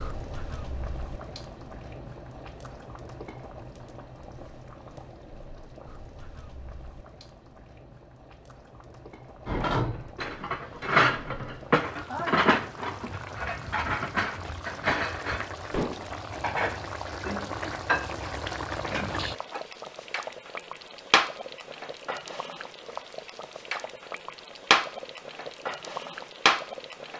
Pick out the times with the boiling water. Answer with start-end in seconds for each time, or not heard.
0.0-27.1.